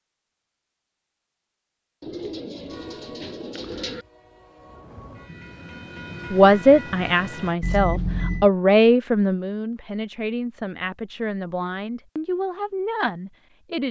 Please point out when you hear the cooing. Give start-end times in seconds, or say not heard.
2.0-4.0.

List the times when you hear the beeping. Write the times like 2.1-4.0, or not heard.
7.6-8.5.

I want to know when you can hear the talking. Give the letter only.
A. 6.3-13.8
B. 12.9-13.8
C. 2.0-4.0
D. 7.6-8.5
A.